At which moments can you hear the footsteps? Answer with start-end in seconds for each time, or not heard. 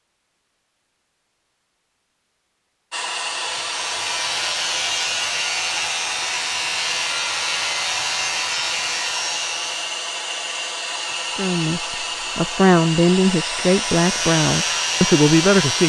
not heard.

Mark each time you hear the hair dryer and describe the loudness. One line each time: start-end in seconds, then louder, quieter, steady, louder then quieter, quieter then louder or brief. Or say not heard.
2.9-15.8 steady.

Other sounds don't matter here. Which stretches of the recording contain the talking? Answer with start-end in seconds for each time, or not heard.
11.3-15.8.